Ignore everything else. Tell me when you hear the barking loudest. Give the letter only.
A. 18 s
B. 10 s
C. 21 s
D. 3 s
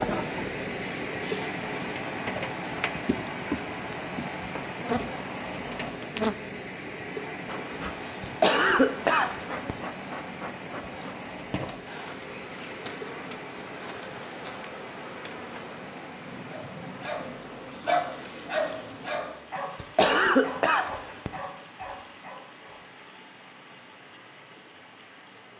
A.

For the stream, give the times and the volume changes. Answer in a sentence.
You can hear the stream from 0.0 to 25.5 s, getting quieter.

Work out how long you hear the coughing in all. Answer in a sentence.
You can hear the coughing for 3 seconds altogether.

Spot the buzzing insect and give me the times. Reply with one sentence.
You can hear the buzzing insect from 0.0 to 19.5 s.